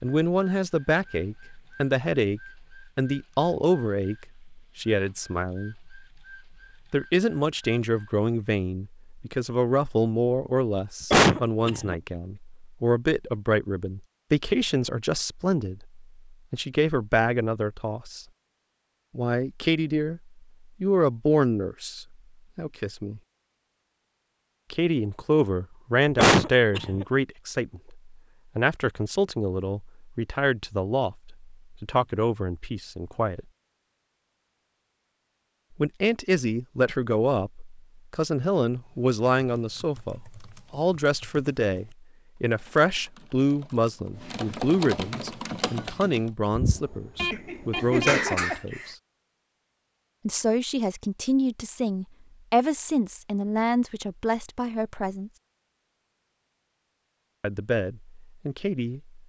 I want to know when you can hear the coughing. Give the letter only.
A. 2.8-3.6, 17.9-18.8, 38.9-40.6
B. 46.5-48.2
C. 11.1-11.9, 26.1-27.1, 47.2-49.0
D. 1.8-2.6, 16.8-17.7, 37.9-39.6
C.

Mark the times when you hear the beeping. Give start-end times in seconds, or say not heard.
46.5-48.2.